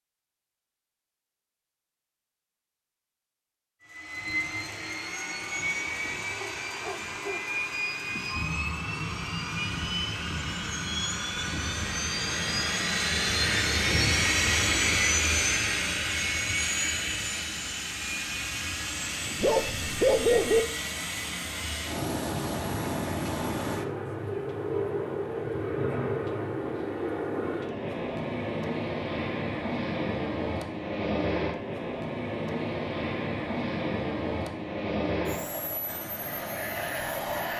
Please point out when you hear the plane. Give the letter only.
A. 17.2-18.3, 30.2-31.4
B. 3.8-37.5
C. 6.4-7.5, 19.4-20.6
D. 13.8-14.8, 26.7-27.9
B.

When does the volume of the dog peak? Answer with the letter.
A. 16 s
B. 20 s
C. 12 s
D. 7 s
B.